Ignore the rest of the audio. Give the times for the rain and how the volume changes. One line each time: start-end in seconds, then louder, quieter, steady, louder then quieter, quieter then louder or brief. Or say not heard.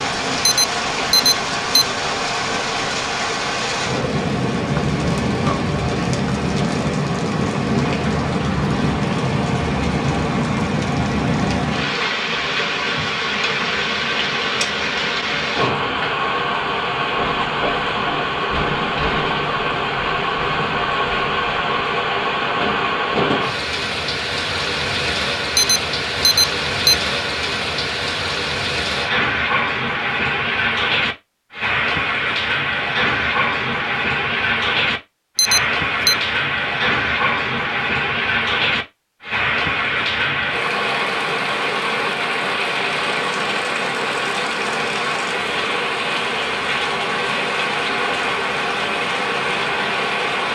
0.0-50.5 steady.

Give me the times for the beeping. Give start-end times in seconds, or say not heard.
0.5-1.9, 25.6-26.9, 35.4-36.1.